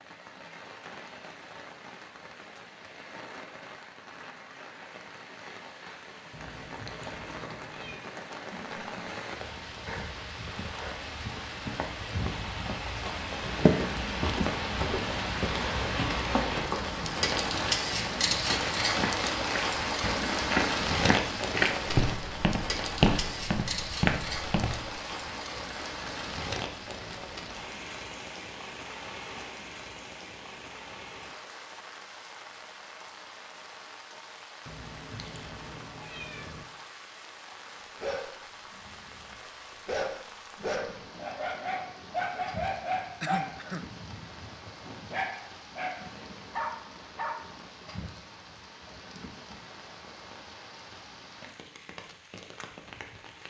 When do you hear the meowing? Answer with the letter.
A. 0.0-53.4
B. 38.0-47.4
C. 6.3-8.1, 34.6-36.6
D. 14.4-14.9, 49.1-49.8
C.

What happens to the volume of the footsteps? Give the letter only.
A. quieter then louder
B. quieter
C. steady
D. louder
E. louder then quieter
D.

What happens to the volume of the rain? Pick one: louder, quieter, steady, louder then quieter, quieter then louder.
louder then quieter.